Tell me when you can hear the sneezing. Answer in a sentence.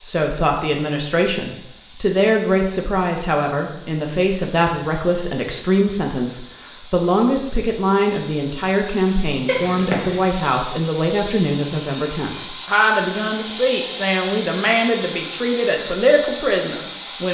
The sneezing can be heard from 9.4 to 10.2 s.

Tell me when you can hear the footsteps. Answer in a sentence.
The footsteps can't be heard in this clip.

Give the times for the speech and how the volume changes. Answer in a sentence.
You can hear the speech from 0.0 to 17.2 s, at a steady volume.